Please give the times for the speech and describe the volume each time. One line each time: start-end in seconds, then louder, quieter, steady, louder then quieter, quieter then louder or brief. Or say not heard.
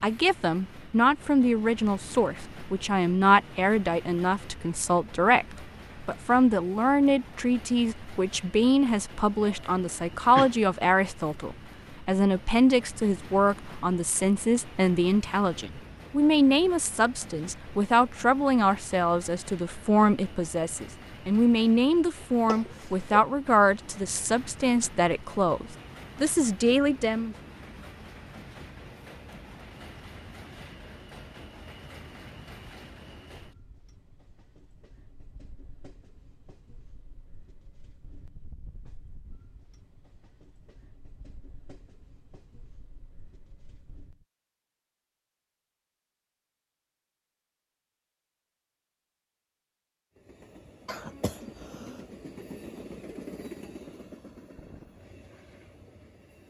0.0-27.4 steady.